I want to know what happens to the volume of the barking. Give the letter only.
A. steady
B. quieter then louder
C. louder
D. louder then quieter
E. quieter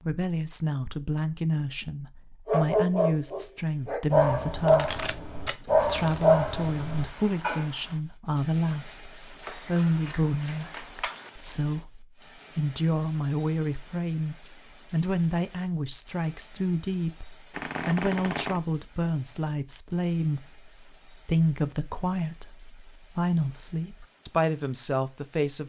D.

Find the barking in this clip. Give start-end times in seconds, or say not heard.
2.5-7.7.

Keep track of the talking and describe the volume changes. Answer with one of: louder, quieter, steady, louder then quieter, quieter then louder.
steady.